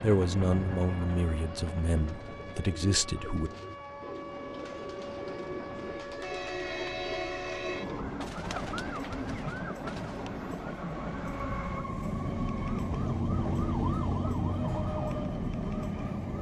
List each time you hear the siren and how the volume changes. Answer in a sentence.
The siren can be heard from 0.0 to 16.3 s, getting louder.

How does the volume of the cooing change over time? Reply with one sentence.
The loudness of the cooing stays about the same.